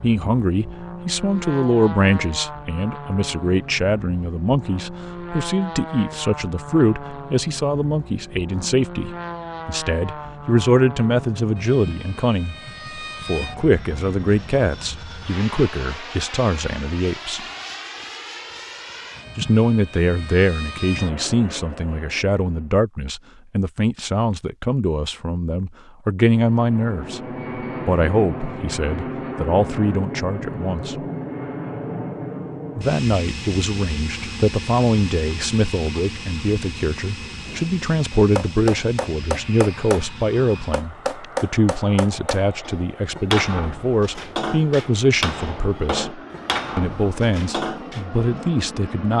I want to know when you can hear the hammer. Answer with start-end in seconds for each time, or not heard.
37.5-48.0.